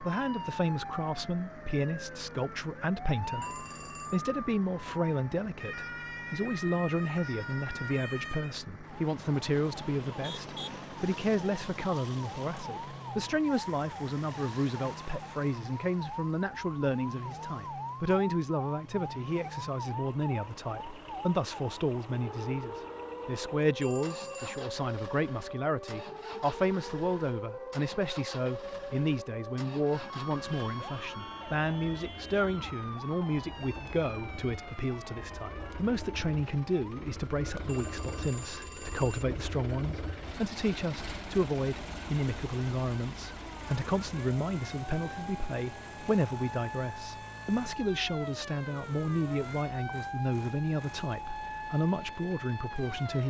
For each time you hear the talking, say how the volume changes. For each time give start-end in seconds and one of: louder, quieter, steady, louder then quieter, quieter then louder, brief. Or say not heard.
0.0-53.2 steady.